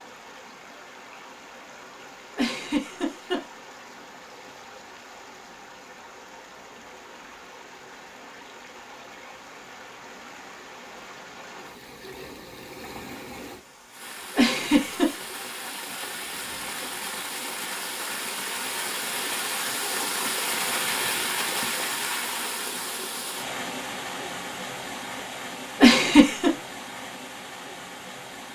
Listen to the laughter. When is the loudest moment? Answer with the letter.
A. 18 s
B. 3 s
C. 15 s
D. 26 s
D.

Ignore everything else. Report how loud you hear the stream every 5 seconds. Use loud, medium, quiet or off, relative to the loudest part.
quiet, quiet, medium, loud, loud, medium.